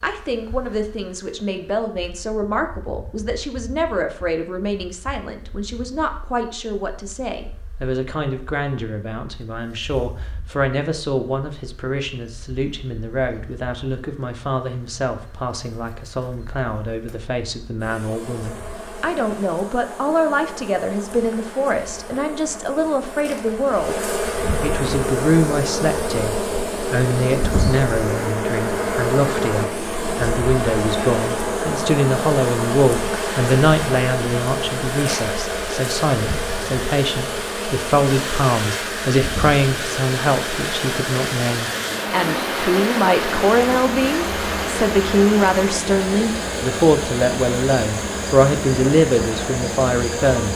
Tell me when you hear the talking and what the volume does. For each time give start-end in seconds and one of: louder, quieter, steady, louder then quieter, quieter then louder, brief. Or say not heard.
0.0-50.5 louder.